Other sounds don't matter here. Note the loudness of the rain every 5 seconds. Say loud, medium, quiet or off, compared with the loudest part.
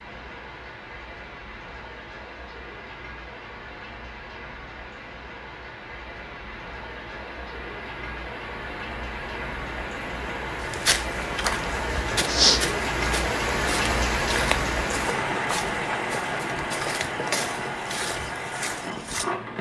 quiet, medium, loud, loud.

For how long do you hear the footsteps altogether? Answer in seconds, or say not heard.
9 s.